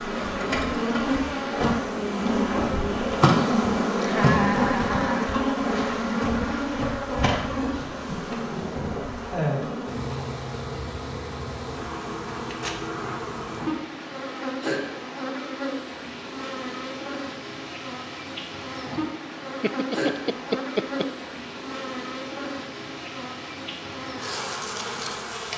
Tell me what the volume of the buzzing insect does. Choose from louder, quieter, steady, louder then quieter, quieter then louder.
quieter.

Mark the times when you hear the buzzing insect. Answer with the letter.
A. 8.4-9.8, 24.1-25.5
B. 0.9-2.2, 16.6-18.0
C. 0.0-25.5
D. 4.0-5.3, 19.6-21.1
C.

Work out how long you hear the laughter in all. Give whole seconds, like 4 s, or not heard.
3 s.